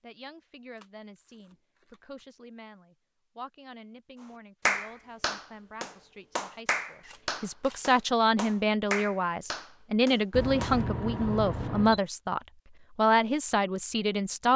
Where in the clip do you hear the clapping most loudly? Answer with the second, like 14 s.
5 s.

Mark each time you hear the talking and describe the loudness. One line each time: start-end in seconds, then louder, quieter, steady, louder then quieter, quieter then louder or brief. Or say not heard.
0.0-14.5 louder.